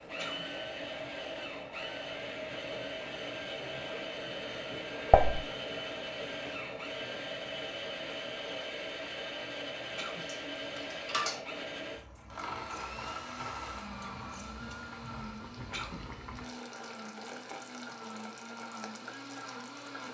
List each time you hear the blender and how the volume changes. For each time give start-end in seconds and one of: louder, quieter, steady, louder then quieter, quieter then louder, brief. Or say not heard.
0.0-20.0 quieter.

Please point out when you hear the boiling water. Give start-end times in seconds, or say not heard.
0.0-20.0.